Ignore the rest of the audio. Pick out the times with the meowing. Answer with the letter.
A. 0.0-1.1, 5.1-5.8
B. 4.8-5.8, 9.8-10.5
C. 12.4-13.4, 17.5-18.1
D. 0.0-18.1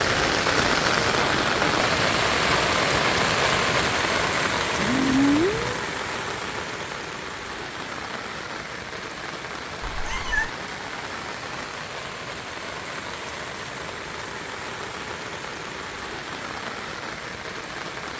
B.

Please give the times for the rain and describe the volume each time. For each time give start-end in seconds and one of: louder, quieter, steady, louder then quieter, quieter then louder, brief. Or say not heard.
0.0-18.1 quieter.